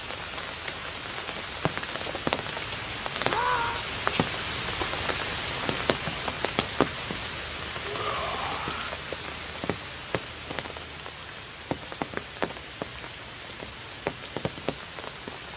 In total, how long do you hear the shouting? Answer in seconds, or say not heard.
2 s.